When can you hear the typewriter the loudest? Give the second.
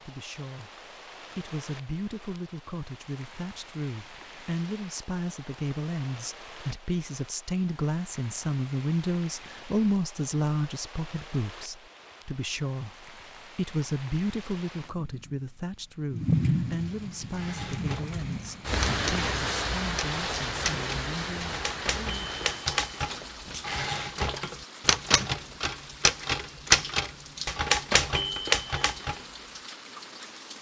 27 s.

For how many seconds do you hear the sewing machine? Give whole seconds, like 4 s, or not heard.
not heard.